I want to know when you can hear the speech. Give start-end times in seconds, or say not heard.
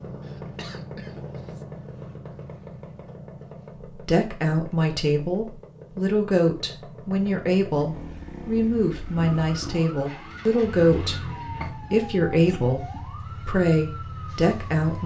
3.9-15.0.